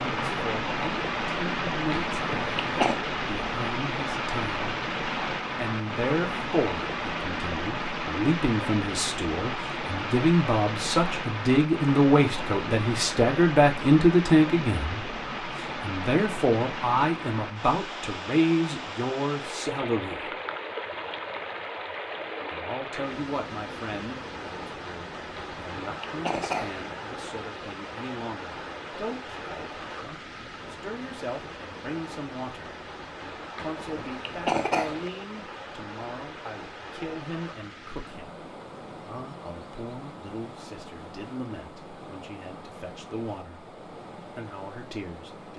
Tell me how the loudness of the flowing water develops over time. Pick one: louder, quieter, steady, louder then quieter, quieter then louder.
quieter.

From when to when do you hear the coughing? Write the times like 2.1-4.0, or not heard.
2.0-3.0, 25.4-26.9, 33.5-35.1.